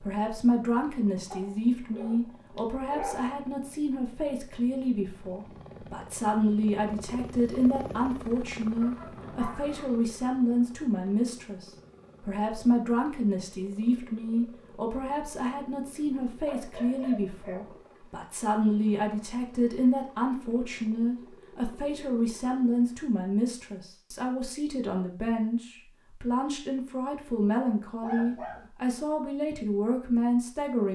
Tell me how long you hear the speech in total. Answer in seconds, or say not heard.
31 s.